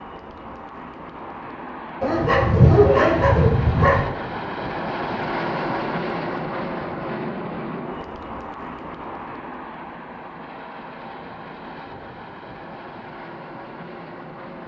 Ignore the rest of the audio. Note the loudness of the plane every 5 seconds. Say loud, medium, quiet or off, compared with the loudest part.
loud, loud, medium.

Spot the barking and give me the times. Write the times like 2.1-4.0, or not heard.
2.0-4.0.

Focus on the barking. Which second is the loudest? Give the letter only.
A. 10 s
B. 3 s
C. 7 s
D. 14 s
B.